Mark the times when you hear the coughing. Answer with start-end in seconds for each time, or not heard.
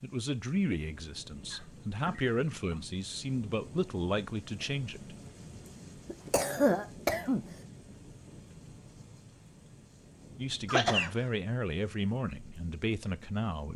1.5-2.8, 6.0-7.5, 10.7-11.1.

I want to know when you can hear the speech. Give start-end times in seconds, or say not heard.
0.0-5.2, 10.3-13.7.